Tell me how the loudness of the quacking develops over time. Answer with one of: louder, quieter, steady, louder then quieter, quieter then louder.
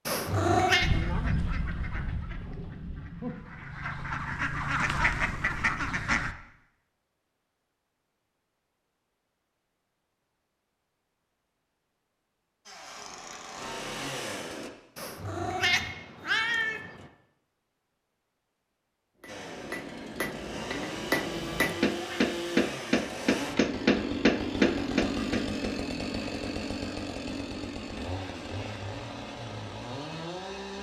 quieter then louder.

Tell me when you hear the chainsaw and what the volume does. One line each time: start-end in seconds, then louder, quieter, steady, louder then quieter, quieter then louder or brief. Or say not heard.
12.7-14.7 brief
19.2-30.7 louder then quieter.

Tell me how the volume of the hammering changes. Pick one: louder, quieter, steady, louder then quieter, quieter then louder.
louder.